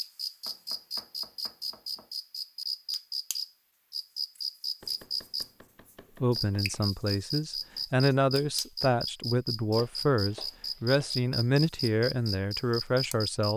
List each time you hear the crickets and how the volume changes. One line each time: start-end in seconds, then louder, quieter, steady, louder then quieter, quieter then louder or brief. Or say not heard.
0.0-13.5 steady.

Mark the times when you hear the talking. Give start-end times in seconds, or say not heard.
6.2-13.5.